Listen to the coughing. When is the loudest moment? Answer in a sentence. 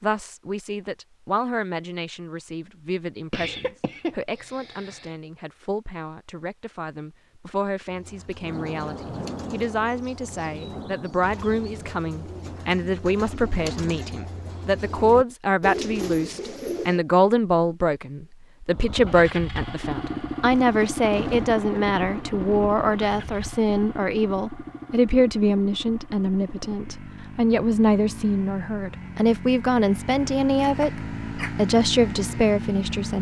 The volume of the coughing peaks at 4 seconds.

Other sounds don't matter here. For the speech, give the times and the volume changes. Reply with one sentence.
The speech can be heard from 0.0 to 33.1 s, getting louder.